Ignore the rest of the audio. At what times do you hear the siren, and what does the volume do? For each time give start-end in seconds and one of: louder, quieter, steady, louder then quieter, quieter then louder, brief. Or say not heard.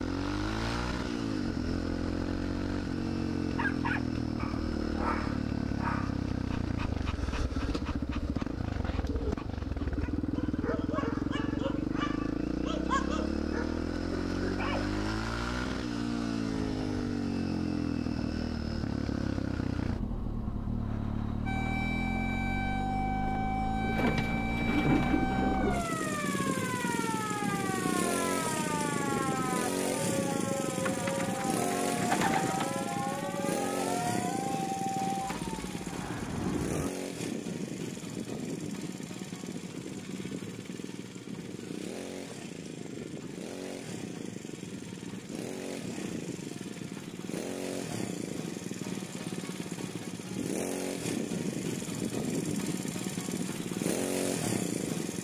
21.4-36.9 steady.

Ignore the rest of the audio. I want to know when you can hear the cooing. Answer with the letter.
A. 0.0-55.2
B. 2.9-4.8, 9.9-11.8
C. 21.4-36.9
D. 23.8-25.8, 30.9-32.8
D.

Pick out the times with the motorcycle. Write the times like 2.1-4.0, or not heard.
0.0-55.2.